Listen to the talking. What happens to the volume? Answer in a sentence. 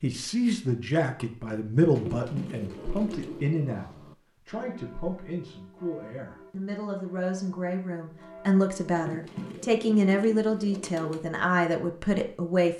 The volume of the talking goes down, then up.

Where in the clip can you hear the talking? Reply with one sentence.
You can hear the talking from 0.0 to 12.7 s.